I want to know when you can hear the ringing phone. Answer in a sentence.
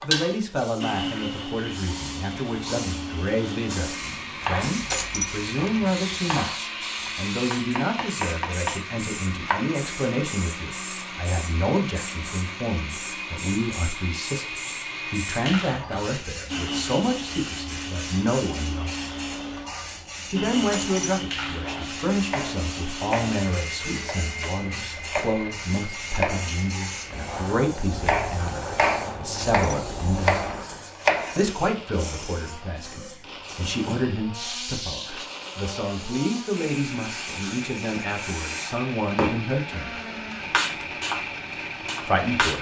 You can't hear the ringing phone here.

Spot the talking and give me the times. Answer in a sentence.
You can hear the talking from 0.0 to 18.9 s, from 20.2 to 40.0 s and from 42.0 to 42.5 s.